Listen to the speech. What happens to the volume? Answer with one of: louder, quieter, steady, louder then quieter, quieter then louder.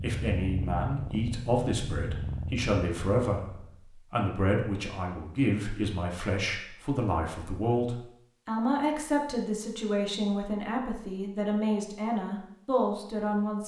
steady.